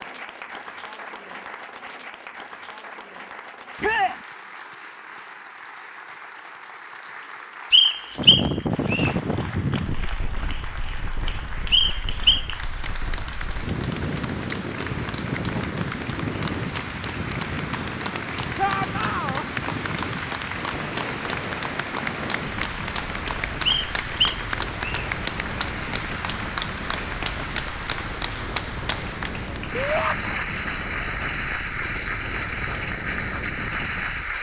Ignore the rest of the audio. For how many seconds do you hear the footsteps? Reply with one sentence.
The footsteps can't be heard in this clip.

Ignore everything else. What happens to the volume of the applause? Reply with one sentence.
The volume of the applause goes up.